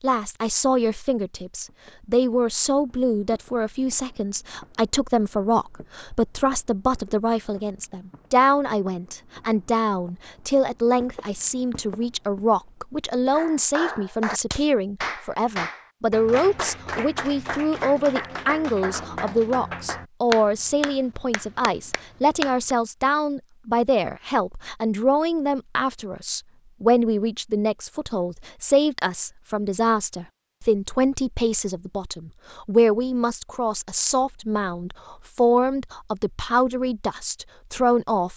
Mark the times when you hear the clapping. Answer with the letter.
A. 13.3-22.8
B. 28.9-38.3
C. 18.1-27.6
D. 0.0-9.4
A.